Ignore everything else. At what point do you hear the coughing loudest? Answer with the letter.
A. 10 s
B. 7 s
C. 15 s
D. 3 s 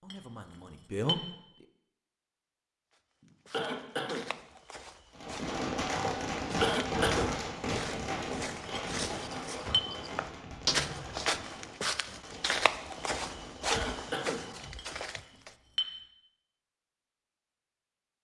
B.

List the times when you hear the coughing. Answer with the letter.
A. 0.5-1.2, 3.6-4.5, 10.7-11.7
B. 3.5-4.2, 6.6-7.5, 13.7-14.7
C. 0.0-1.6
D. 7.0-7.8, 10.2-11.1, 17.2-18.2
B.